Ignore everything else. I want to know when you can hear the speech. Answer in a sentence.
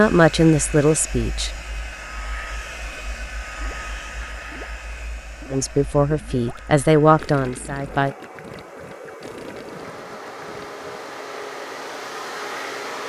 You can hear the speech from 0.0 to 1.5 s and from 5.5 to 8.2 s.